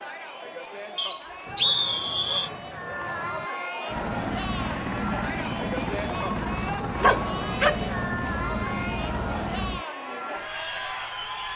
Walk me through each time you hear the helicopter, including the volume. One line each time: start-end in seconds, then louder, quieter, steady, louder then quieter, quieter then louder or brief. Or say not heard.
3.9-9.8 steady.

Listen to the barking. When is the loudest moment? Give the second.
7 s.